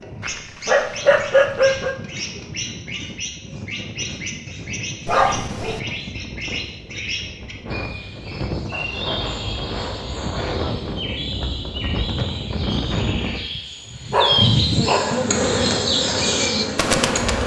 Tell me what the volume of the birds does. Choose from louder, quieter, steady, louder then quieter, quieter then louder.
louder.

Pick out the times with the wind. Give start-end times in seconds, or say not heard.
0.0-13.4.